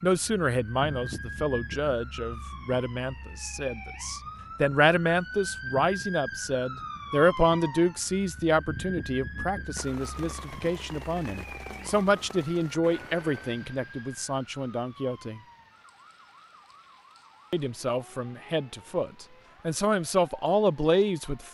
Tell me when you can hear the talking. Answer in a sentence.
You can hear the talking from 0.0 to 15.4 s and from 17.5 to 21.4 s.